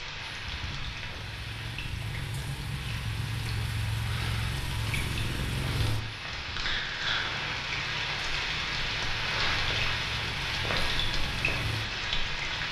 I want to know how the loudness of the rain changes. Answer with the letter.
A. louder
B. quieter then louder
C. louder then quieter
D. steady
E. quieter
A.